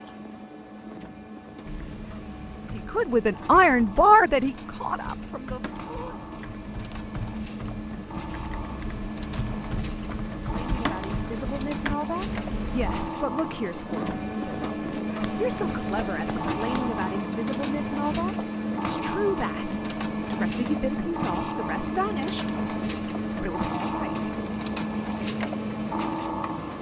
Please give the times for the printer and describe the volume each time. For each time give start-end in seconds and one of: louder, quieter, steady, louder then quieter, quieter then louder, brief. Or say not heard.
0.0-26.7 louder.